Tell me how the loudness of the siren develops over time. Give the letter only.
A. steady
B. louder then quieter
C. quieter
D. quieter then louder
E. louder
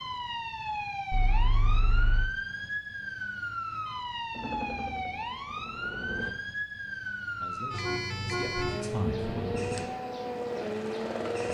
A.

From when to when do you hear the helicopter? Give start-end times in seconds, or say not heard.
4.3-6.3, 9.2-11.4.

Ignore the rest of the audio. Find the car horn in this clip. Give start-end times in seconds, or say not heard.
1.1-2.3, 7.7-9.8.